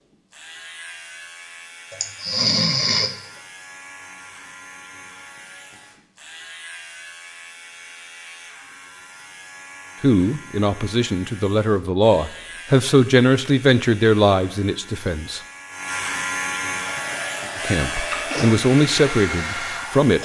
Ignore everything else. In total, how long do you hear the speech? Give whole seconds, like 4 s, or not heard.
8 s.